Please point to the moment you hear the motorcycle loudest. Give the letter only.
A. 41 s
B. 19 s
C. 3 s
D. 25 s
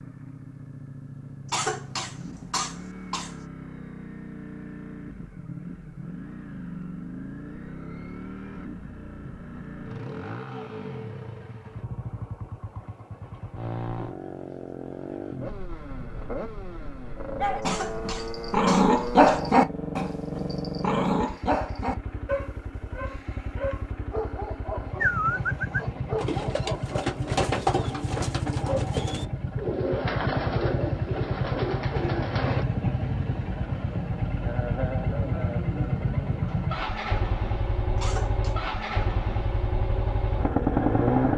A.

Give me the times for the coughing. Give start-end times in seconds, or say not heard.
1.5-3.5, 17.6-19.4, 38.0-38.5.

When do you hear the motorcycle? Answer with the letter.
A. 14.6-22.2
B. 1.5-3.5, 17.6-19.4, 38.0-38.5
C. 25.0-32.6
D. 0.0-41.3
D.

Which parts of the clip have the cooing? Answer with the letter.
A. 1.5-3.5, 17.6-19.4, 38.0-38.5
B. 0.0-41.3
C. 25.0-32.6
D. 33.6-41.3
C.